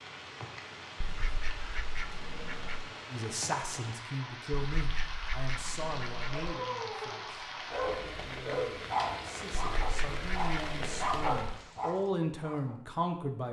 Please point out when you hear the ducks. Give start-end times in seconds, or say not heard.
1.0-2.9, 4.5-6.5, 9.6-11.3.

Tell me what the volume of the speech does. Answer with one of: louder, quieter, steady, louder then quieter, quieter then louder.
quieter then louder.